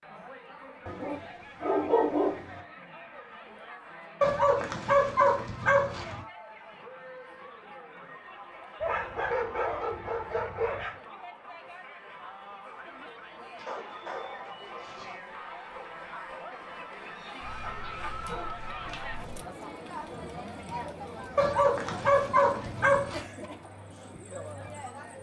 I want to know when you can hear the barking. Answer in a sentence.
The barking can be heard from 0.8 to 2.4 s, from 4.2 to 6.2 s, from 8.8 to 10.9 s, from 13.6 to 15.2 s, from 17.4 to 19.4 s and from 21.4 to 23.2 s.